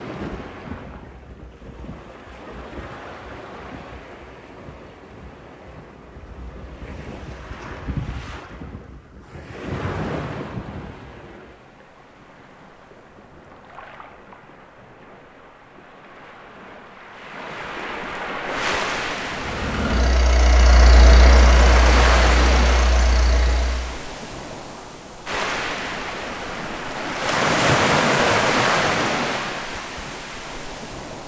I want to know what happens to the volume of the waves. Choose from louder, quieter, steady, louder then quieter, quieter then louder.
louder.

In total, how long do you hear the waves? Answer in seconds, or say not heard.
31 s.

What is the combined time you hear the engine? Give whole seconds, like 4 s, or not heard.
5 s.